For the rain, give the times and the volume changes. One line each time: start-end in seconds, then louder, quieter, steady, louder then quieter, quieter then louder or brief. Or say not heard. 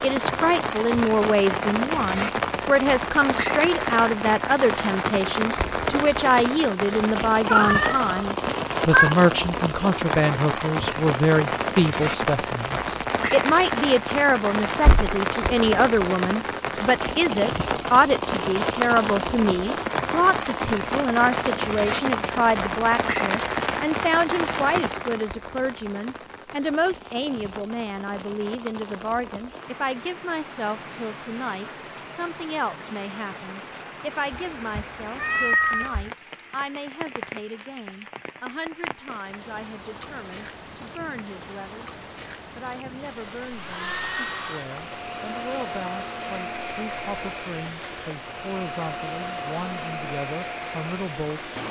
0.0-51.6 quieter.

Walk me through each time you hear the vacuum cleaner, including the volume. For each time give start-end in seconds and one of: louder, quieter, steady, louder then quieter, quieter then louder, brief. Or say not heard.
43.4-51.6 steady.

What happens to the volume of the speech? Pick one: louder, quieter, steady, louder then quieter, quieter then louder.
quieter.